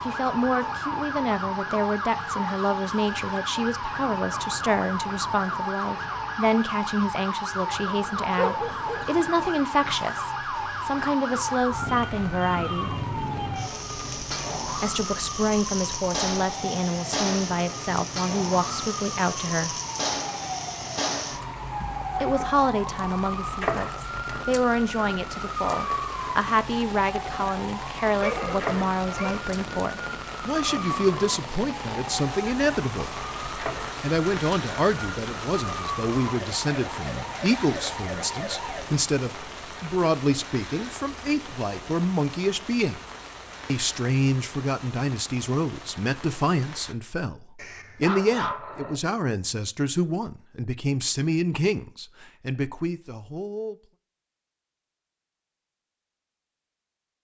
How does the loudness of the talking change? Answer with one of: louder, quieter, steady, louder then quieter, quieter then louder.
steady.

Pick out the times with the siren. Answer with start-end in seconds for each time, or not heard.
0.0-38.9.